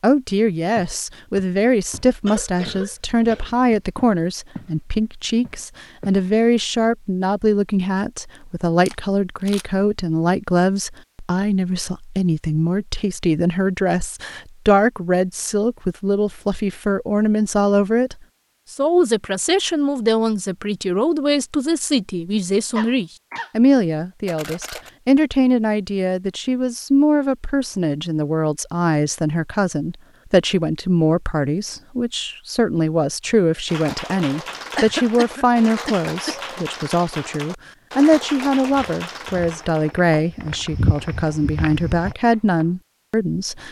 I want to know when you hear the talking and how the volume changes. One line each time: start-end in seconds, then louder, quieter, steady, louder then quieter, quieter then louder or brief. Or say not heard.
0.0-43.6 steady.